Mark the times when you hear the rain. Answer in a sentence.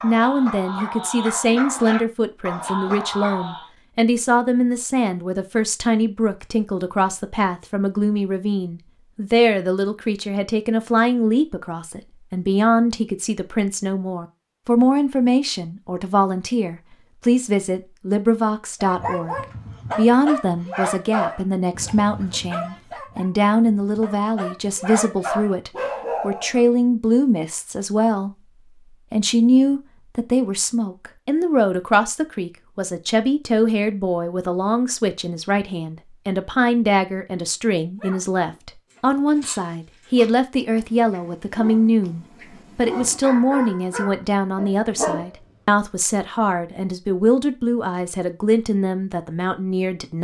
The rain can't be heard in this clip.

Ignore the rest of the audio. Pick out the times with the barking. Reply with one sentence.
You can hear the barking from 0.0 to 3.6 s, from 18.8 to 26.6 s and from 38.0 to 45.4 s.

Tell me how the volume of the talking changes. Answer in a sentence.
The loudness of the talking stays about the same.